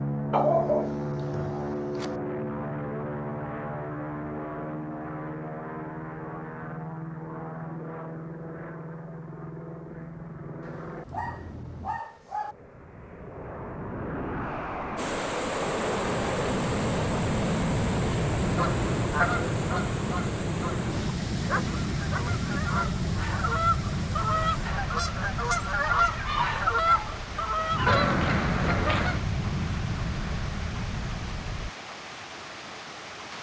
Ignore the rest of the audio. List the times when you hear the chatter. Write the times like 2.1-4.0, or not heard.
not heard.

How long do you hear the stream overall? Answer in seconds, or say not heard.
18 s.